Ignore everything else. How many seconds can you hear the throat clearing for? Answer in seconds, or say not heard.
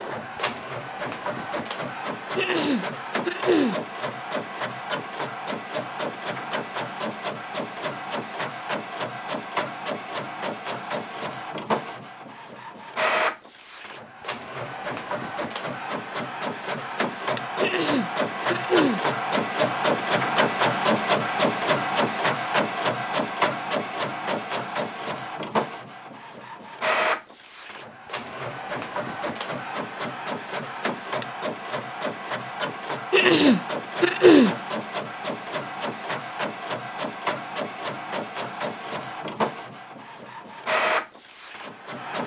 4 s.